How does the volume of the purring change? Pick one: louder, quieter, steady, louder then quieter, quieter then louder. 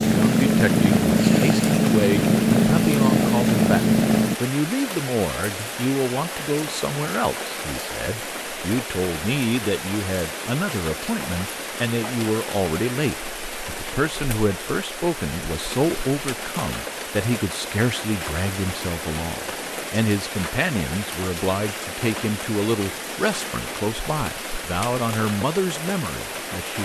steady.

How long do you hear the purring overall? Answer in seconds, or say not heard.
4 s.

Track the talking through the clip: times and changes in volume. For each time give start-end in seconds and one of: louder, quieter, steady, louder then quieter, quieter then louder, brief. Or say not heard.
0.1-26.8 steady.